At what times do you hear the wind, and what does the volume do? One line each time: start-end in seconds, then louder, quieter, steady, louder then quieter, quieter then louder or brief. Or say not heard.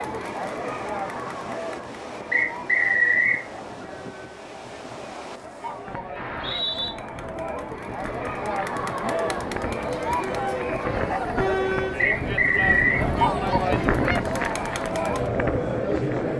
0.0-16.3 louder.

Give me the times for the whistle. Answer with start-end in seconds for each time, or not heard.
2.3-3.5, 6.2-6.9, 11.9-13.1.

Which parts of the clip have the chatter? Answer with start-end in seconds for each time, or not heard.
0.0-16.3.